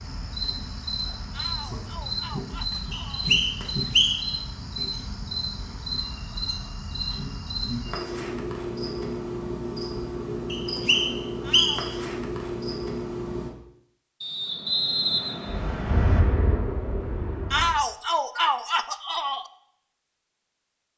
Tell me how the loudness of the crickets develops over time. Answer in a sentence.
The volume of the crickets stays about the same.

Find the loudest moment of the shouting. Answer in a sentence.
The loudest moment of the shouting is at 18 seconds.